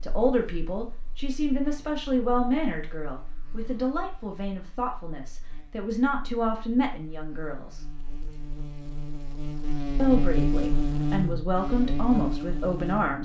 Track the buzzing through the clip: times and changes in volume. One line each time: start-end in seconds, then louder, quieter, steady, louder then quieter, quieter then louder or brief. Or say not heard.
0.0-13.2 louder.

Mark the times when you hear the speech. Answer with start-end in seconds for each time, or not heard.
0.0-7.8, 9.9-13.2.